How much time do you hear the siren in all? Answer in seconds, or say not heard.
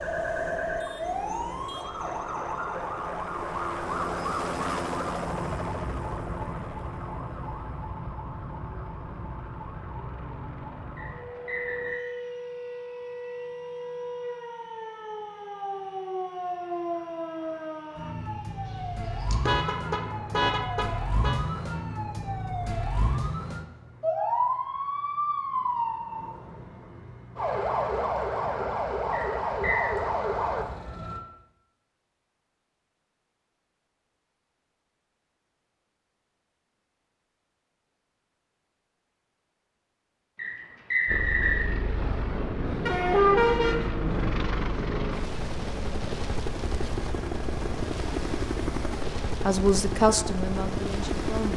31 s.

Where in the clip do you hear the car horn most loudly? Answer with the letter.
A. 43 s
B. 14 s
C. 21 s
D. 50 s
A.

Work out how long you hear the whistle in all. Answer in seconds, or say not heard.
3 s.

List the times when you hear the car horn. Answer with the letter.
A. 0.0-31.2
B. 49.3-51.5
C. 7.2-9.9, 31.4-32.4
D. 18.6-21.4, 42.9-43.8
D.